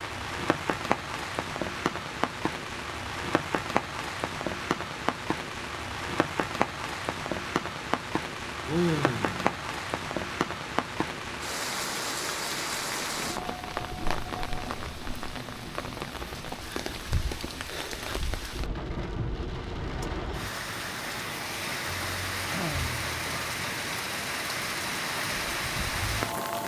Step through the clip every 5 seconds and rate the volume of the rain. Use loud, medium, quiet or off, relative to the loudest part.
loud, loud, loud, medium, loud, loud.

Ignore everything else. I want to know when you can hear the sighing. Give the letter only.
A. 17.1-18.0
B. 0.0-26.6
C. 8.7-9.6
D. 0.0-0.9
C.